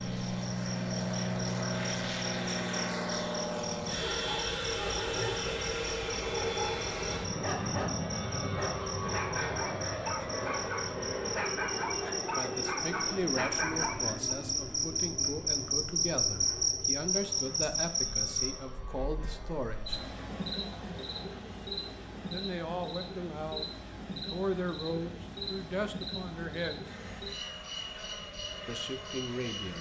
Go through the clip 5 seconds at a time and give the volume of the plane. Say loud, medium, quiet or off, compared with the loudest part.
loud, loud, medium, quiet, quiet, quiet.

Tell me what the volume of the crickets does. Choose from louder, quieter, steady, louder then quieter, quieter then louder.
louder then quieter.